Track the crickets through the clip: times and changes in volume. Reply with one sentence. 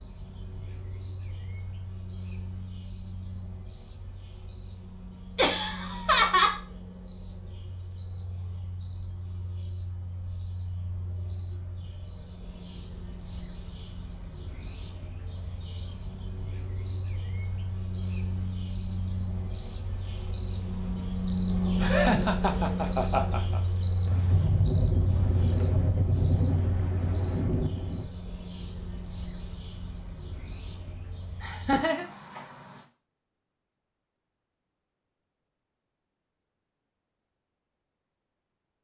You can hear the crickets from 0.0 to 32.9 s, getting louder then quieter.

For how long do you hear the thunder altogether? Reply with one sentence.
The thunder can be heard for 4 seconds in total.